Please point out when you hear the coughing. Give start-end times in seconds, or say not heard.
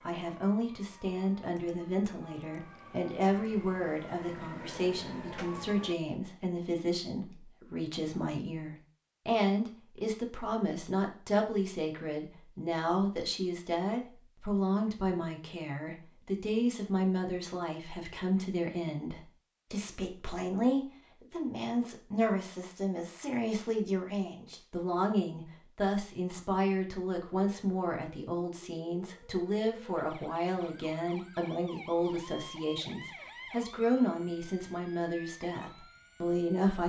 not heard.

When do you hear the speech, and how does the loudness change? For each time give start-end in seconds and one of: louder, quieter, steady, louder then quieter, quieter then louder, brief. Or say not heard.
0.1-36.8 steady.